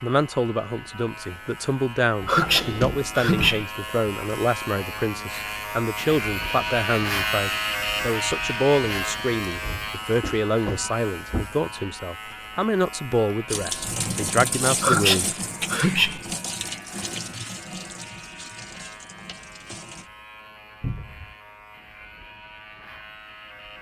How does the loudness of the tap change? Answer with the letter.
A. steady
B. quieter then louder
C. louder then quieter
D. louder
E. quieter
E.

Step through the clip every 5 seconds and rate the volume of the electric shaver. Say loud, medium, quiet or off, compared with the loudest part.
medium, loud, medium, quiet, quiet.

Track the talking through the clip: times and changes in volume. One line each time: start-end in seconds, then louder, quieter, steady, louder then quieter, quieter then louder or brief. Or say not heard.
0.0-15.2 steady.